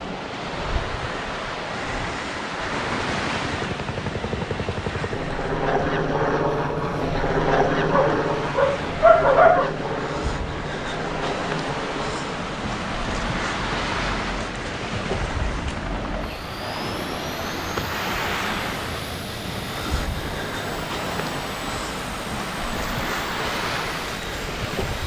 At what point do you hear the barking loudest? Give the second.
9 s.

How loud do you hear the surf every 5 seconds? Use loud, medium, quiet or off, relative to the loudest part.
loud, medium, loud, loud, loud.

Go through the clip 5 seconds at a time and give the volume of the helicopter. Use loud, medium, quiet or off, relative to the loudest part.
medium, loud, medium, quiet, quiet.